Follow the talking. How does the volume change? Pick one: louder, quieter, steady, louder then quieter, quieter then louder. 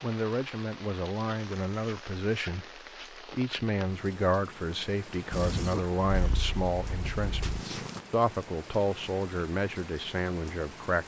steady.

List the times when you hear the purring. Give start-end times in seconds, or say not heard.
5.3-8.1.